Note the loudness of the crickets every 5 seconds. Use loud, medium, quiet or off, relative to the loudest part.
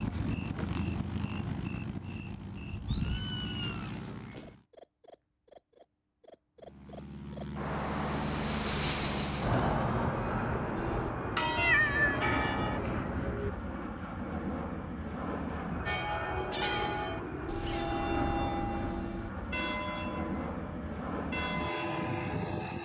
quiet, loud, medium, off, off.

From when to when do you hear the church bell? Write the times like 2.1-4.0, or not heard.
10.8-12.8, 15.8-22.6.